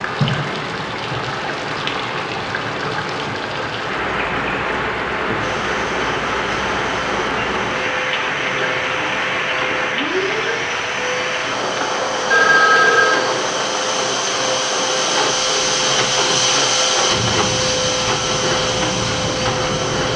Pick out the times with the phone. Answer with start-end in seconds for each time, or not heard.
12.3-13.2.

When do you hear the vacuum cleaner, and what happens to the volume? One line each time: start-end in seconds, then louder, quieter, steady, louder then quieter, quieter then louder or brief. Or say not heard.
5.4-20.1 louder.